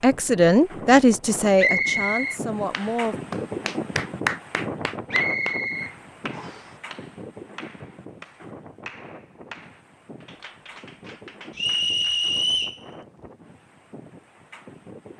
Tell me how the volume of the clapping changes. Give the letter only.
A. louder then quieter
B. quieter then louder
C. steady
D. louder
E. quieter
E.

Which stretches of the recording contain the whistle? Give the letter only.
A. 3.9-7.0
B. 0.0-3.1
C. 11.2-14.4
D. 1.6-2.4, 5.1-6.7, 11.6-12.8
D.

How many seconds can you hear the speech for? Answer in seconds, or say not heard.
3 s.